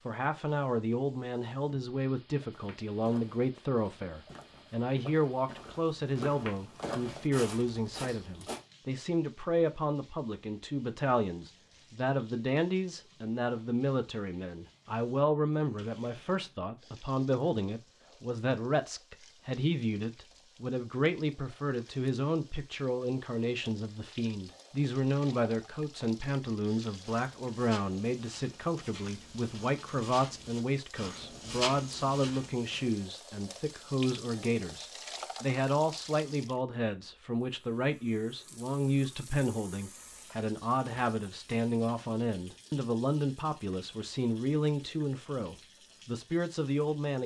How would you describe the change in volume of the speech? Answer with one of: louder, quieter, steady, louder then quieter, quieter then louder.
steady.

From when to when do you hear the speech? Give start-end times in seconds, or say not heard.
0.1-47.2.